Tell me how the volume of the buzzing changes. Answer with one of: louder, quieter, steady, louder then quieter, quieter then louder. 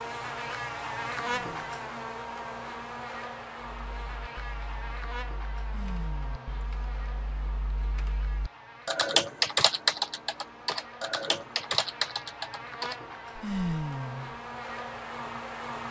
quieter then louder.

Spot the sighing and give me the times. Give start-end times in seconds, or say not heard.
1.2-2.0, 5.7-6.7, 13.4-14.3.